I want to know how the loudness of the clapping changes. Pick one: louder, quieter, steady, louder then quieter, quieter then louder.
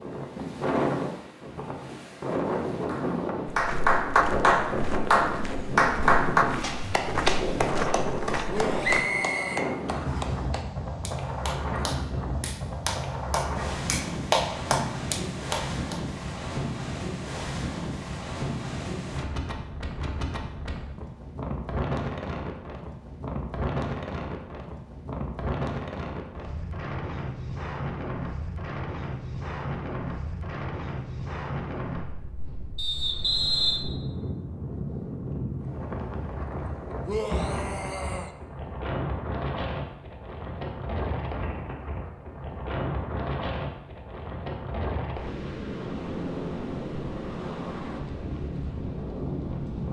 quieter then louder.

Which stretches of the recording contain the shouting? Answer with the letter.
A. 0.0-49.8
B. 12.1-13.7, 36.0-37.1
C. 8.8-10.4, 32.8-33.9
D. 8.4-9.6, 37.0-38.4
D.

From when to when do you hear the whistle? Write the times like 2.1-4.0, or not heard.
8.8-10.4, 32.8-33.9.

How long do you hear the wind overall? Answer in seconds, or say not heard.
50 s.